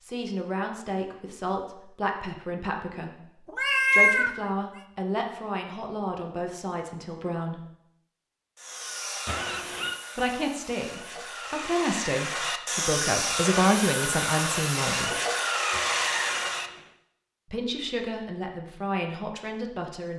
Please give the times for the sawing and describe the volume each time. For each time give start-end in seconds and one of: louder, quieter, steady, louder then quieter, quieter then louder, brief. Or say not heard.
8.6-16.7 louder.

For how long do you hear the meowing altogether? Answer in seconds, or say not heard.
3 s.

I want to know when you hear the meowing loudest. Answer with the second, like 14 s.
4 s.